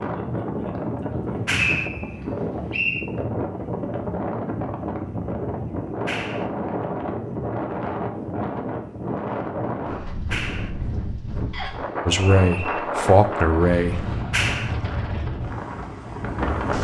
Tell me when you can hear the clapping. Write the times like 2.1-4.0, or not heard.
1.4-1.9, 6.0-6.5, 10.3-10.8, 14.3-14.8.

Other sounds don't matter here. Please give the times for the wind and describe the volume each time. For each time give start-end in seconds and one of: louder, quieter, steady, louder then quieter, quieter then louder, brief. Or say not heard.
0.0-16.7 steady.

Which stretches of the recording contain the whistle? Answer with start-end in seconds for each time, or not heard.
1.7-3.0, 11.5-12.8.